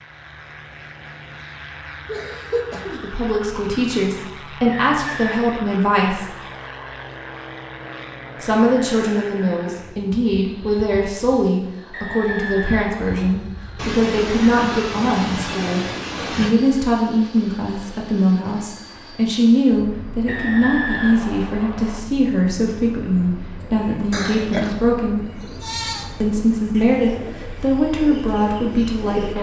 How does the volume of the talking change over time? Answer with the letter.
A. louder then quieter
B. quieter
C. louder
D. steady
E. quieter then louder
D.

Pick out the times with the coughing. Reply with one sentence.
You can hear the coughing from 2.0 to 3.0 s, from 13.8 to 16.6 s and from 24.1 to 24.8 s.